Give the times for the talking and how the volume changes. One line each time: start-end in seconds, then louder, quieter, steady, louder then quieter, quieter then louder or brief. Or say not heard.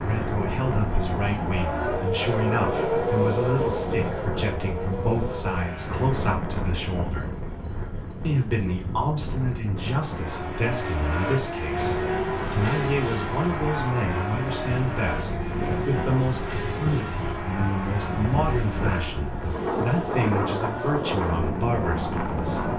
0.0-7.3 steady
8.2-22.7 steady.